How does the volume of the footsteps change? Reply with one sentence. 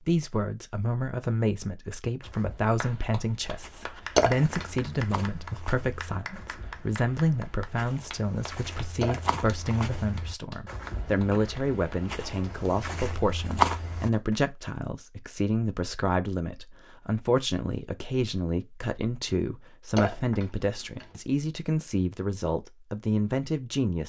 The loudness of the footsteps goes up.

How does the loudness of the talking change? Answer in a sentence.
The loudness of the talking stays about the same.